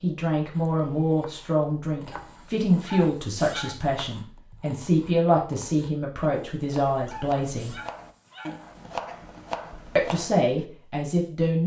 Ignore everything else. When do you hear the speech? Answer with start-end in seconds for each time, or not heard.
0.0-7.8, 9.9-11.6.